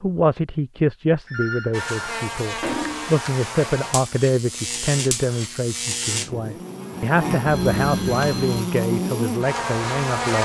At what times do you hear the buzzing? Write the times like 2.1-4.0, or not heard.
1.7-10.4.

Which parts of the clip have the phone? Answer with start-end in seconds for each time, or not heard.
1.2-3.1, 7.5-8.7.